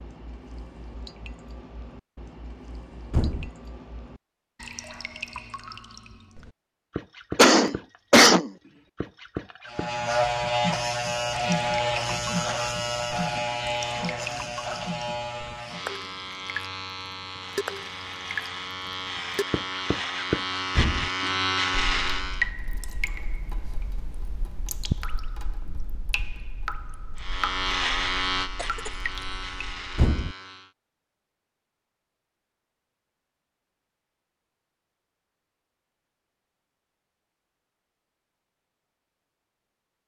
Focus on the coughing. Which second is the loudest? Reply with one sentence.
The volume of the coughing peaks at 8 seconds.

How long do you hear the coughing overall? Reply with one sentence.
You can hear the coughing for 2 seconds altogether.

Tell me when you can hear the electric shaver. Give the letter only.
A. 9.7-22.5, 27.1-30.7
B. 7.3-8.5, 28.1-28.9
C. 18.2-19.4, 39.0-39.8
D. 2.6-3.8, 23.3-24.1
A.